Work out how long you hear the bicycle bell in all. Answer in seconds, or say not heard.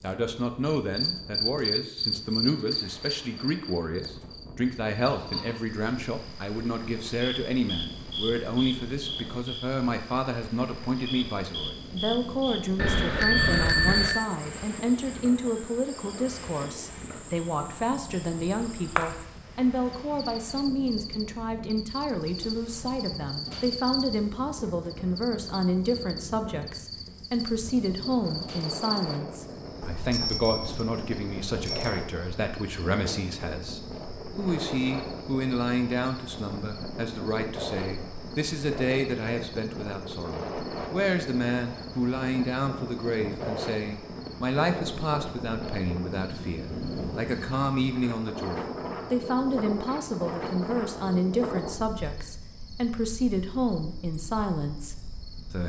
4 s.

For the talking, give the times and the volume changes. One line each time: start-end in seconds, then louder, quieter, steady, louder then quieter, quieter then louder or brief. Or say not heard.
0.0-55.6 steady.